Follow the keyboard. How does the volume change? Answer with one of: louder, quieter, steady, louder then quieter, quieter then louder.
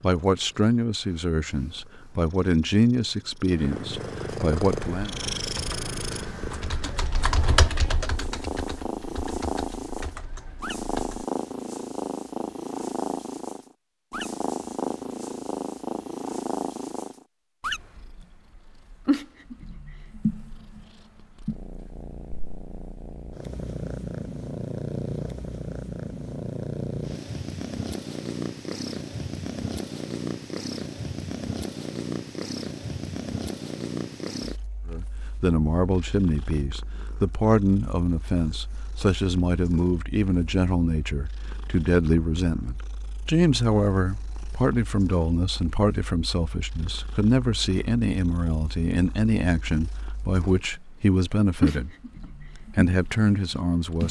louder then quieter.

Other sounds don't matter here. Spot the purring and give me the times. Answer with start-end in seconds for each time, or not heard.
0.0-54.0.